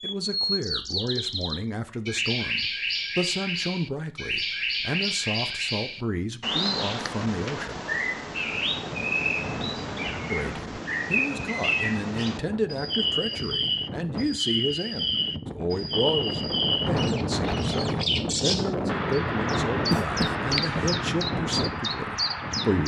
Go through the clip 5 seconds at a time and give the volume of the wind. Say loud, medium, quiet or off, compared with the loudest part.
off, medium, medium, loud, loud.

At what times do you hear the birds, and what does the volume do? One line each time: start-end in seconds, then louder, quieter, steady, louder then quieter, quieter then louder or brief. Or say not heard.
0.0-22.8 steady.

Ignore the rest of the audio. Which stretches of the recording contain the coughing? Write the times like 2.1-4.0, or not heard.
19.9-20.9.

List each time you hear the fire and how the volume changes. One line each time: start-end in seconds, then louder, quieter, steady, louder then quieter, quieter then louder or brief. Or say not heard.
not heard.